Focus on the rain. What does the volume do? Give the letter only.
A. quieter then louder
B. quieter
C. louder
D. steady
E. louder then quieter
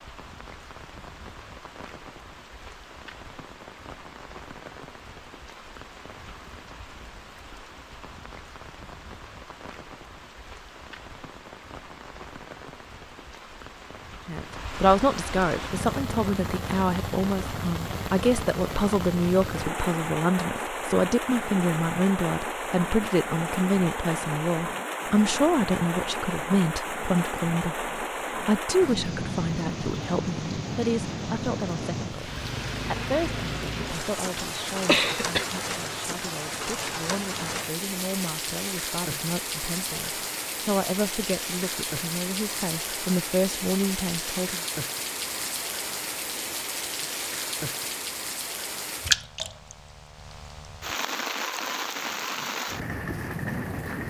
C.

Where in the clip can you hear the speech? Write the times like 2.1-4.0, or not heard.
14.2-44.6.